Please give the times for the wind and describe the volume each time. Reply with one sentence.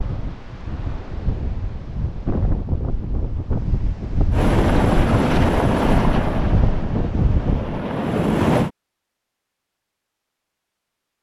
You can hear the wind from 0.0 to 7.8 s, getting louder.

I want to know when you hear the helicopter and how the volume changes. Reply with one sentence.
The helicopter can be heard from 4.3 to 8.7 s, getting quieter then louder.